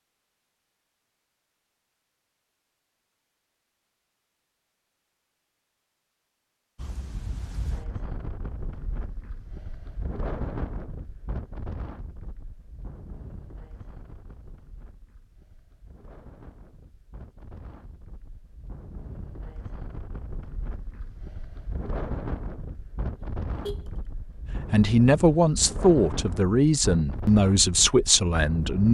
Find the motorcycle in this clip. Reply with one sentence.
You can't hear the motorcycle here.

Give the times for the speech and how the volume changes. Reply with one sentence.
You can hear the speech from 24.7 to 28.9 s, at a steady volume.